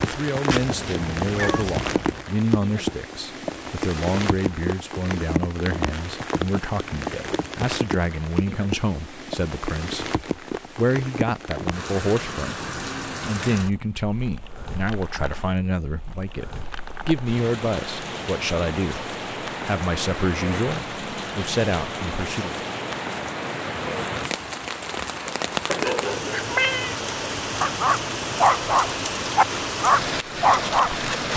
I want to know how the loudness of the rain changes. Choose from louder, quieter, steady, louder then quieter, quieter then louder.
quieter then louder.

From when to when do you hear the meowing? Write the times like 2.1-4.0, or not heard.
0.5-2.2, 26.5-26.9.